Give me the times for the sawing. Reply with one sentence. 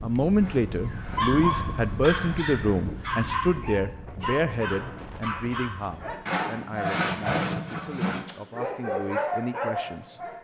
You can hear the sawing from 0.3 to 3.1 s and from 6.2 to 8.2 s.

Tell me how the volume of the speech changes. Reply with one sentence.
The volume of the speech goes down.